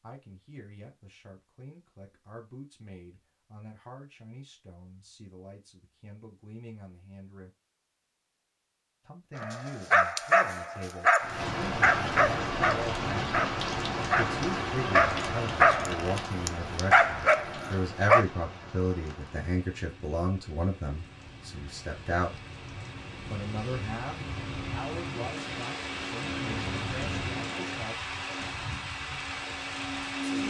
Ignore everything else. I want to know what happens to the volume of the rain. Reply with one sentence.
The volume of the rain goes down, then up.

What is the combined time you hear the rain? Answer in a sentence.
You can hear the rain for 19 seconds altogether.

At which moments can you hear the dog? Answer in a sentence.
The dog can be heard from 9.3 to 18.2 s.